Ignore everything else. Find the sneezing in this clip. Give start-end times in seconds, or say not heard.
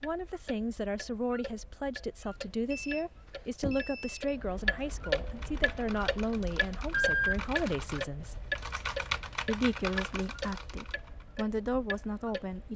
not heard.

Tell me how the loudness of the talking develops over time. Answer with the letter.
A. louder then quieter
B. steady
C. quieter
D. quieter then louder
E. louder
B.